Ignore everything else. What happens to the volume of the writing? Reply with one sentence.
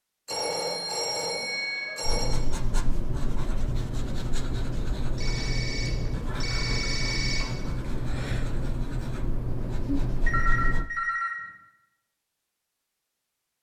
The loudness of the writing stays about the same.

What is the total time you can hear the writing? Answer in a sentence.
You can hear the writing for 9 seconds altogether.